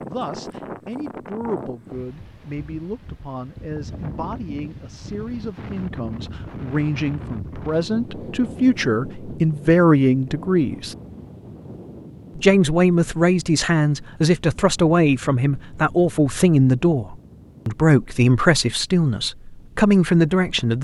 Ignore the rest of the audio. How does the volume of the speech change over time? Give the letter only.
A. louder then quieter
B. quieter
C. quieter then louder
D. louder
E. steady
D.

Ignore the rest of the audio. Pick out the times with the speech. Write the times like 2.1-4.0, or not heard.
0.0-10.9, 12.3-20.8.